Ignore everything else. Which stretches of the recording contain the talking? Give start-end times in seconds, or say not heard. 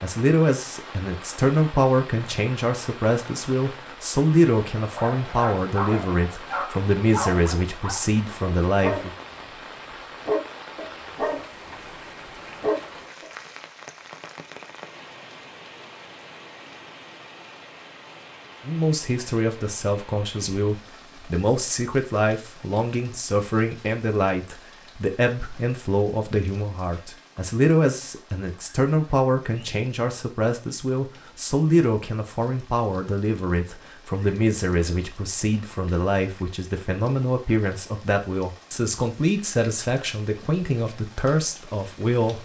0.0-9.1, 18.6-42.4.